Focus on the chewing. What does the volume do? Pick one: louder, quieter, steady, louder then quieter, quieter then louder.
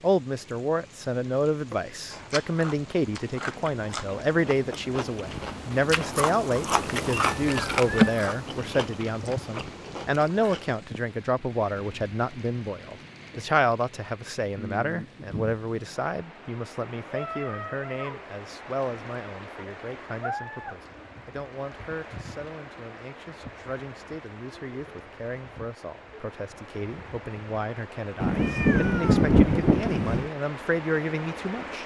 louder then quieter.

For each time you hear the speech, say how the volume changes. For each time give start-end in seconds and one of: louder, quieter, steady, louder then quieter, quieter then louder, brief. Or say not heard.
0.0-31.8 quieter then louder.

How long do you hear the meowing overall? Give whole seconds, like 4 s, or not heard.
3 s.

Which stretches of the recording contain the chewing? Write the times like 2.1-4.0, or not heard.
2.1-10.8.